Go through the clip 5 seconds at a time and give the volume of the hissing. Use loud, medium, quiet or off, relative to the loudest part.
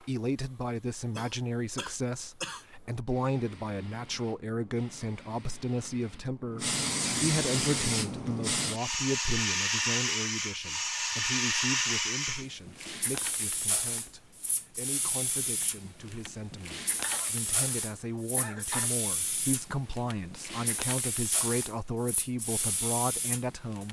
quiet, loud, loud, medium, medium.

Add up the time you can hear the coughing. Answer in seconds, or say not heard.
3 s.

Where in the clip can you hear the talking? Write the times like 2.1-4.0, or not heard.
0.1-23.8.